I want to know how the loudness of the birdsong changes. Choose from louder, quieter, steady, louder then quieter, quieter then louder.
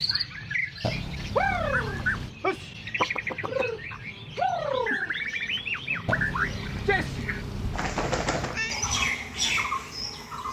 steady.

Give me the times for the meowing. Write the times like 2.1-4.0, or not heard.
0.8-2.4, 6.0-8.8.